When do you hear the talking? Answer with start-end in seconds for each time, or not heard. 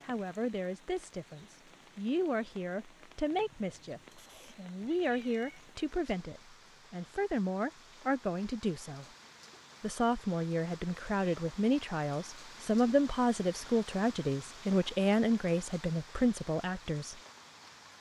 0.0-9.1, 9.8-17.1.